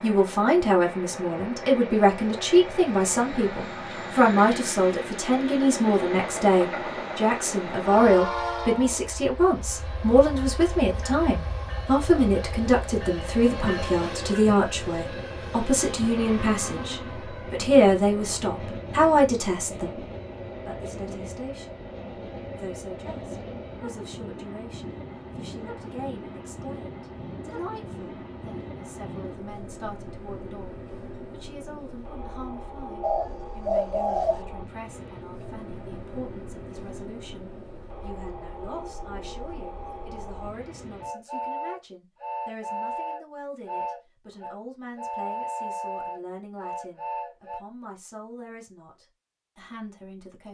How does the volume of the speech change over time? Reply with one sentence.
The loudness of the speech goes down.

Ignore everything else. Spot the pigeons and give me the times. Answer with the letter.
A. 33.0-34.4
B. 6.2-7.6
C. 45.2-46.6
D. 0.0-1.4
A.